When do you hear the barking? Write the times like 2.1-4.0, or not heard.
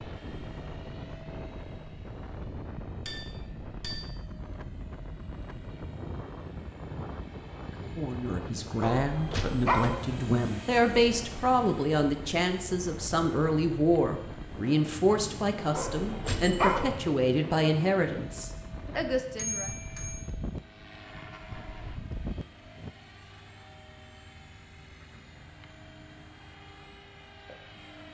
8.8-9.9, 15.8-16.9.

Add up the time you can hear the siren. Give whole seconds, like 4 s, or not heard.
not heard.